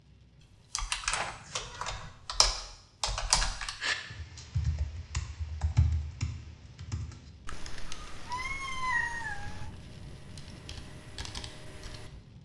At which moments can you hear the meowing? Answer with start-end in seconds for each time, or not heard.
1.1-2.1, 7.5-9.7.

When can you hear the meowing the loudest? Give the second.
9 s.